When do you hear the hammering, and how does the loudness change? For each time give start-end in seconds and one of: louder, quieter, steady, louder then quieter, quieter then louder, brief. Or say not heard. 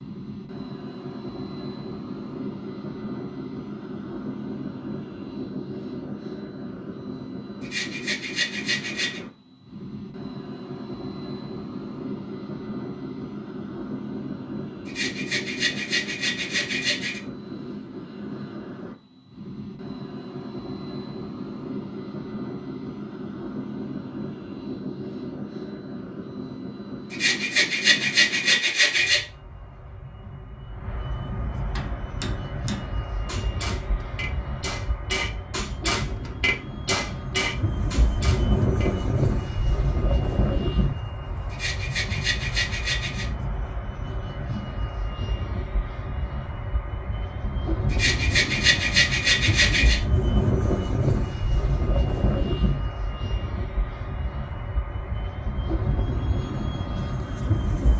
31.8-38.9 louder.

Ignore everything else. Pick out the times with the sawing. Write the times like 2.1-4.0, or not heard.
7.6-9.2, 14.8-17.2, 27.1-29.2, 41.5-43.2, 47.9-50.0.